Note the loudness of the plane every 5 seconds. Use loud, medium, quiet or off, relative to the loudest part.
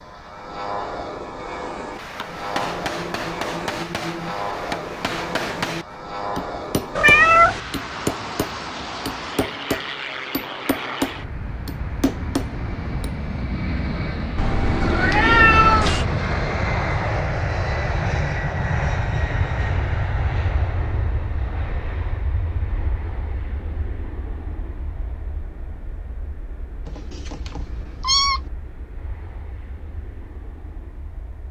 medium, medium, medium, loud, medium, quiet, quiet.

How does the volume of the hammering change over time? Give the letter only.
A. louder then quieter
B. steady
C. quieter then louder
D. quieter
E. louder
B.